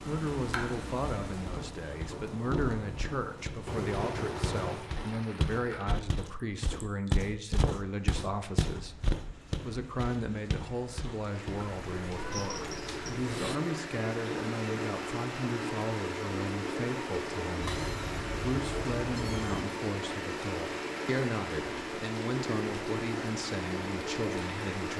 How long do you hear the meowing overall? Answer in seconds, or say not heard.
5 s.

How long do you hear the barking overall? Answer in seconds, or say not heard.
not heard.